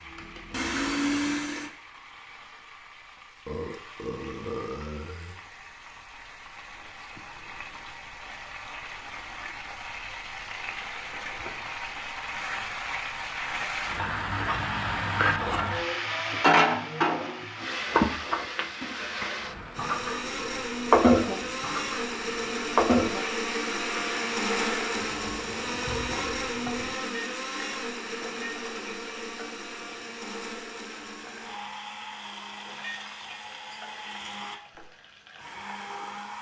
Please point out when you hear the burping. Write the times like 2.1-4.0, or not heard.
3.5-5.4.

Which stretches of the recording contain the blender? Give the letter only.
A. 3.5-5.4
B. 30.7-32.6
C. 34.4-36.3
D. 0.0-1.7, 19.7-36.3
D.